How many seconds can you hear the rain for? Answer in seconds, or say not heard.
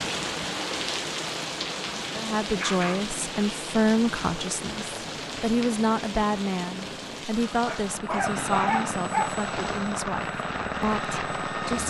12 s.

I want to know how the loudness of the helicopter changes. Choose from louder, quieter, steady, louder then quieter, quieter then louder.
louder.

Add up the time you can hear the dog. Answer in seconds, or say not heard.
2 s.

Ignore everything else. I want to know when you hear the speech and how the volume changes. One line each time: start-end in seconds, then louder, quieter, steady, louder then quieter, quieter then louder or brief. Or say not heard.
2.1-11.8 quieter.